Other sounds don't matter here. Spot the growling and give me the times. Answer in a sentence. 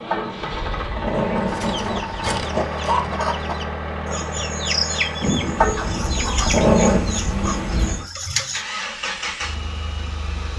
The growling can be heard from 0.1 to 2.6 s and from 5.6 to 7.1 s.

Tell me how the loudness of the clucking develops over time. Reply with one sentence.
The loudness of the clucking goes down.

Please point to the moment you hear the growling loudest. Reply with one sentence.
The loudest moment of the growling is at 7 seconds.